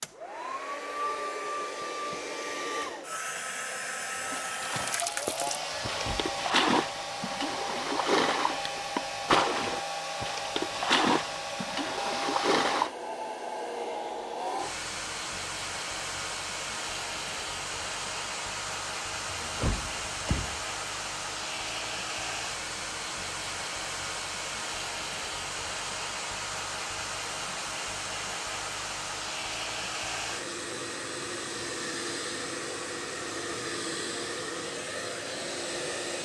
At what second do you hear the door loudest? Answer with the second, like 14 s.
20 s.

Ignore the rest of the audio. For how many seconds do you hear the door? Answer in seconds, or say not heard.
2 s.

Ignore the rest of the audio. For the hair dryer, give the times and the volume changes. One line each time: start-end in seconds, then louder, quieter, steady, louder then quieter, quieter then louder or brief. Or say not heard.
0.0-36.2 steady.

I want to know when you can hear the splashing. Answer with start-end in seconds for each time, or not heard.
4.2-12.9.